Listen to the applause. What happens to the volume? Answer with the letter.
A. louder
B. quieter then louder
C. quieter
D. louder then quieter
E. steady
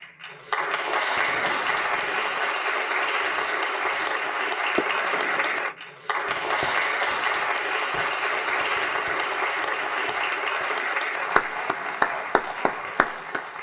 E.